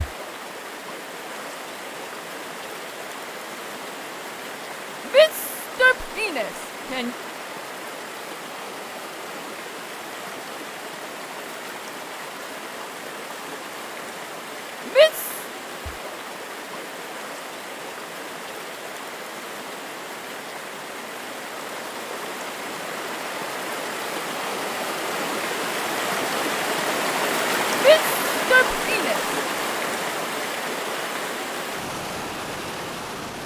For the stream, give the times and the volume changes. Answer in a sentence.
The stream can be heard from 0.0 to 33.4 s, getting louder.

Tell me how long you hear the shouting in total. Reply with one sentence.
The shouting can be heard for 4 seconds in total.